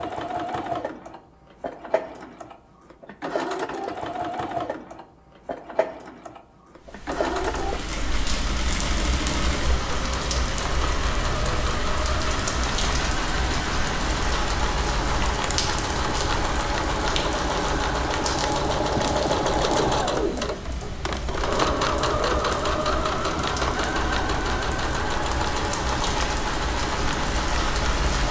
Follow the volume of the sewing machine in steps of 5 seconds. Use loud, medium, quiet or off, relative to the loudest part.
medium, medium, medium, loud, loud, loud.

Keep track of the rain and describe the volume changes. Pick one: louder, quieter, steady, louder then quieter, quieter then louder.
quieter then louder.